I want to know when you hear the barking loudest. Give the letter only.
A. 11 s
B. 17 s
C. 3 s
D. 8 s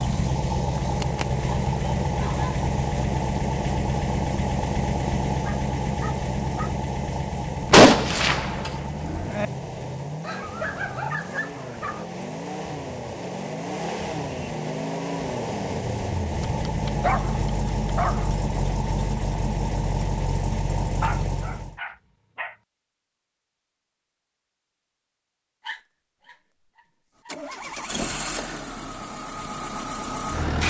B.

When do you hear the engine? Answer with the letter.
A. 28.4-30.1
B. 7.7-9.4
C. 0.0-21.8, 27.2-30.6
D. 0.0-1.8
C.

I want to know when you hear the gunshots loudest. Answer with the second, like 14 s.
8 s.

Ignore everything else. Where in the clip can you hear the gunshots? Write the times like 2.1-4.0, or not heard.
7.7-9.4.